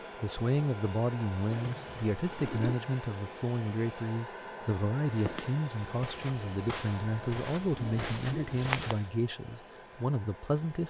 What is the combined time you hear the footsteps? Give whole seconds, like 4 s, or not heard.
4 s.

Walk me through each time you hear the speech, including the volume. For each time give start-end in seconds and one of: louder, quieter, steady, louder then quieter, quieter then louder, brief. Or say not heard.
0.2-10.8 steady.